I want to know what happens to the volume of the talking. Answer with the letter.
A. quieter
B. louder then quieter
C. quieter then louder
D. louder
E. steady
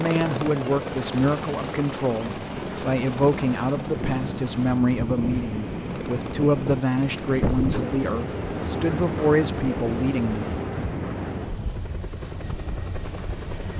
E.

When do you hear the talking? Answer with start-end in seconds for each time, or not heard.
0.0-10.4.